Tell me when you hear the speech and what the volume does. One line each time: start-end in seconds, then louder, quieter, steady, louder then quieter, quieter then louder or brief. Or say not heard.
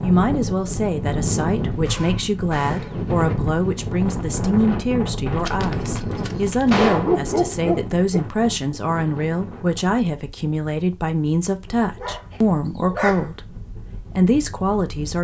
0.0-15.1 steady.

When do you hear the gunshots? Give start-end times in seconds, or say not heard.
5.6-7.5.